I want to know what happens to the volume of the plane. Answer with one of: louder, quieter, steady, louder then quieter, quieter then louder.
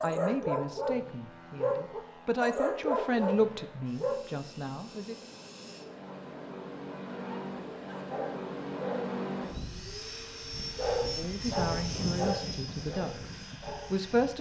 louder.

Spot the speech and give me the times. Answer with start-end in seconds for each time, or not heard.
0.0-5.2, 11.2-14.3.